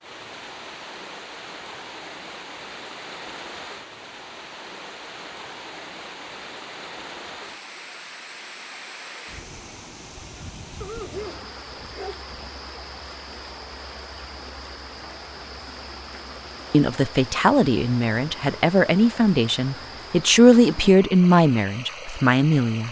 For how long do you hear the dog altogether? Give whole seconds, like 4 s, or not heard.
2 s.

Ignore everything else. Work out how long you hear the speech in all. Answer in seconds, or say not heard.
6 s.